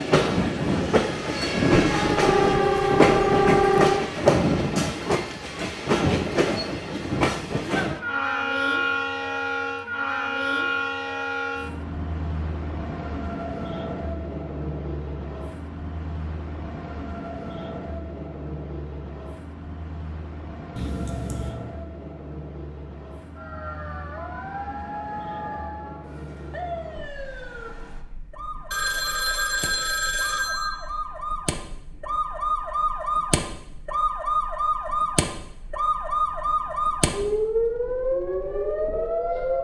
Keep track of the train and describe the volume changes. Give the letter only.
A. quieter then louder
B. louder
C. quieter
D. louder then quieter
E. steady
C.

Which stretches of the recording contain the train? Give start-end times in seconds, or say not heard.
0.0-39.5.